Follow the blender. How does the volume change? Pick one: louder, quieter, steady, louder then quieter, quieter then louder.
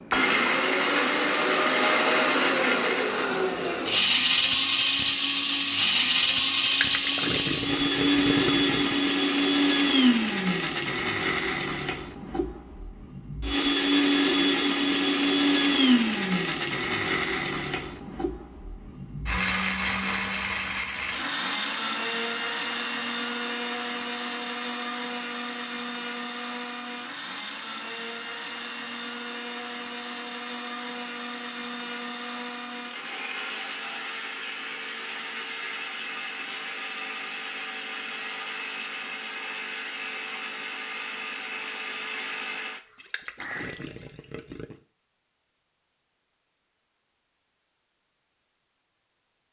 quieter.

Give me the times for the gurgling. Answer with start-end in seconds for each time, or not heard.
6.7-9.0, 43.0-44.8.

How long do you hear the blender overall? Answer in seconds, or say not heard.
44 s.